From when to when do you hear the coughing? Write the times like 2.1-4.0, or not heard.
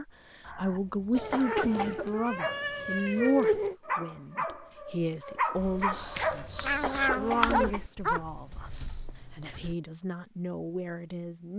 0.5-2.1, 6.0-7.8.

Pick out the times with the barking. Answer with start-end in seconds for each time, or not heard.
2.3-9.1.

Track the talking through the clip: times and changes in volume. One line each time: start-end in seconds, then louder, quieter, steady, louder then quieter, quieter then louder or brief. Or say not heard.
0.0-11.5 quieter.